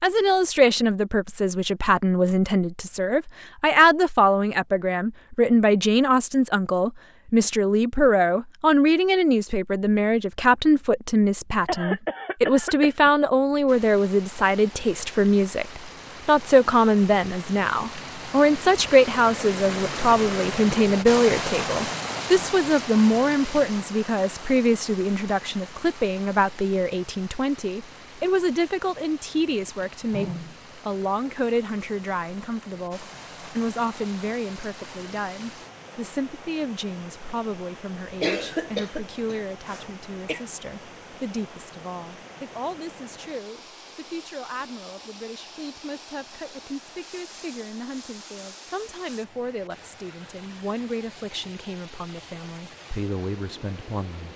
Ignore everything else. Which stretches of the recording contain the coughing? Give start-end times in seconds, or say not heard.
11.7-13.1, 38.0-40.4.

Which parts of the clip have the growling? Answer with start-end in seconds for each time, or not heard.
29.9-30.6.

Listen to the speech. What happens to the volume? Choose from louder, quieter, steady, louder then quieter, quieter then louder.
quieter.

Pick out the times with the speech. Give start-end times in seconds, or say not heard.
0.0-54.3.